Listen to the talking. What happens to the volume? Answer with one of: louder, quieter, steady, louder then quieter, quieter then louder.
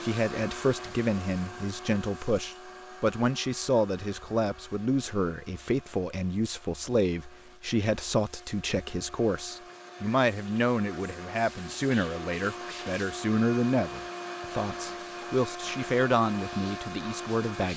steady.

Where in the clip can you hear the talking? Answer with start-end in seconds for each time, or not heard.
0.0-17.7.